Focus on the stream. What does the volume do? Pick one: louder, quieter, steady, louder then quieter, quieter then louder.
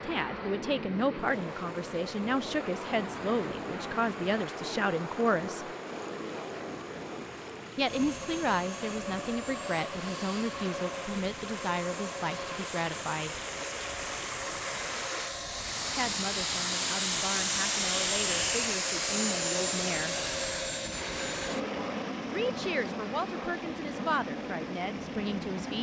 louder then quieter.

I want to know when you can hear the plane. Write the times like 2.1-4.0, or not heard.
0.0-25.7.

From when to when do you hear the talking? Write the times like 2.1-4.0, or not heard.
0.1-5.7, 7.8-13.4, 15.9-20.1, 22.3-25.7.